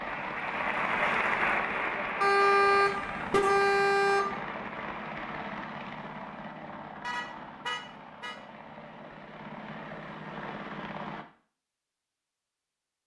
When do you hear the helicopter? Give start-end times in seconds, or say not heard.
0.0-11.2.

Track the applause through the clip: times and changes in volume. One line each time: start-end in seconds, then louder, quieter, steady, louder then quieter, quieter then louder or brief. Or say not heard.
0.0-5.5 quieter.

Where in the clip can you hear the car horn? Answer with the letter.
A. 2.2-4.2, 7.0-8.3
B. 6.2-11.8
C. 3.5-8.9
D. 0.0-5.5
A.